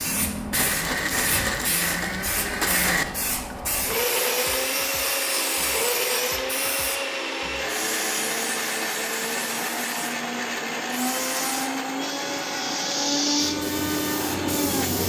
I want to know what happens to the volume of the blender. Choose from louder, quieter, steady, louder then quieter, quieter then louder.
steady.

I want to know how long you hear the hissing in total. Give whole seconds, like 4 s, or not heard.
15 s.